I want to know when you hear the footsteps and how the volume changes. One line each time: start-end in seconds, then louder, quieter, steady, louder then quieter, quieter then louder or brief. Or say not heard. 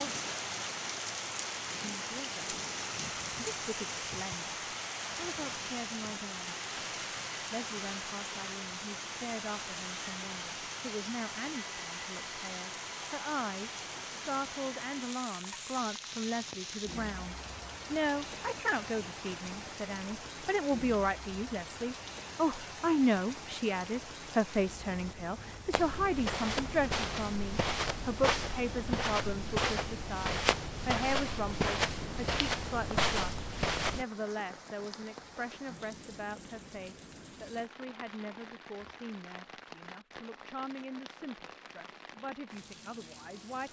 25.7-34.0 steady.